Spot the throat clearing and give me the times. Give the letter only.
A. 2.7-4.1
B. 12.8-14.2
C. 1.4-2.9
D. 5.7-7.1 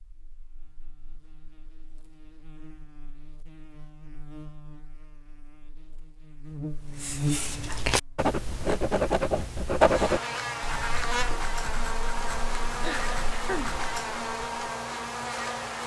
B.